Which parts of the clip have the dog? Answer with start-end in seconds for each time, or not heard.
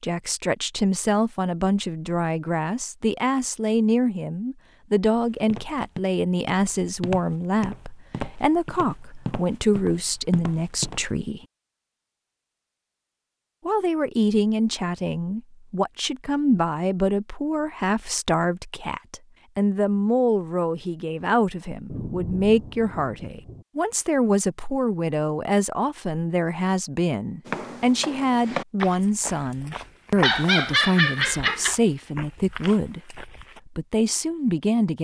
30.2-31.8.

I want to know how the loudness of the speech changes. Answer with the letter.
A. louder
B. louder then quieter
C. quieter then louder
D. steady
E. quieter
D.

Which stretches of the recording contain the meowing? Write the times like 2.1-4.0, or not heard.
not heard.